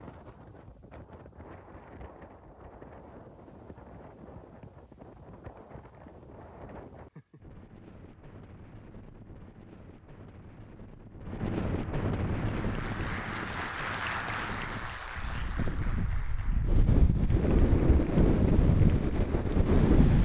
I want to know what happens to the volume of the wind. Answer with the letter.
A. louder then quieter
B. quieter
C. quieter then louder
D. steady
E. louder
E.